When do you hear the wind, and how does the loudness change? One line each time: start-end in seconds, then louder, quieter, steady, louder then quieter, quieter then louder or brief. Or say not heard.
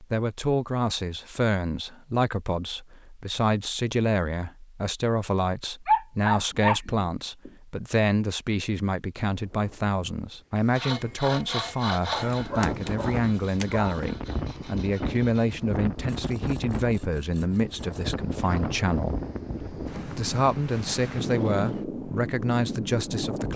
9.3-23.5 louder.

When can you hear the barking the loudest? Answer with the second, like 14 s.
6 s.